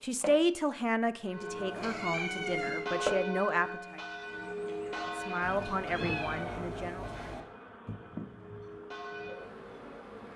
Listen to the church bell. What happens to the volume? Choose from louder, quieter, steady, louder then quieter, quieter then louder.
quieter.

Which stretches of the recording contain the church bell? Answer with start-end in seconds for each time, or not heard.
1.2-9.6.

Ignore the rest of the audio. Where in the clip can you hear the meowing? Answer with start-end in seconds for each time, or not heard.
1.8-2.9, 5.4-7.4.